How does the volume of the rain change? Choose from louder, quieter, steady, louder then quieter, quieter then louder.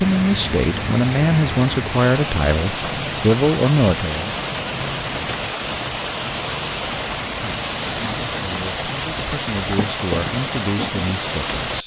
steady.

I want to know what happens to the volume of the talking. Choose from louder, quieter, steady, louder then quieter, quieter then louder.
quieter.